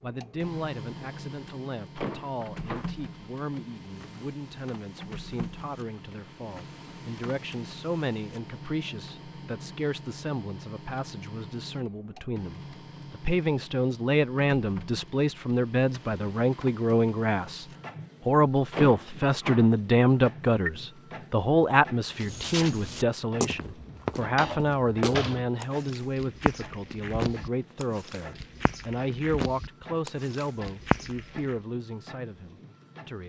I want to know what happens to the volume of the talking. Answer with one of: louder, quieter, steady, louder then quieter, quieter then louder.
louder then quieter.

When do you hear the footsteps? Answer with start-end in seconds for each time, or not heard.
22.1-31.6.